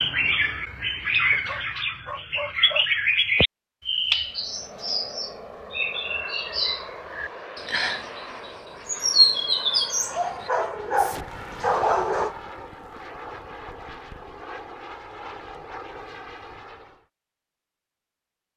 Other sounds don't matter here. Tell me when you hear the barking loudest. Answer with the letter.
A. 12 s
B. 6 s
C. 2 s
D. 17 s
A.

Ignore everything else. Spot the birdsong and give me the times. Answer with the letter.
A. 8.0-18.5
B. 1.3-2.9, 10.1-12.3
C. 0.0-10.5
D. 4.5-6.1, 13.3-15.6
C.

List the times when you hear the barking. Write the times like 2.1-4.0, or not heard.
1.3-2.9, 10.1-12.3.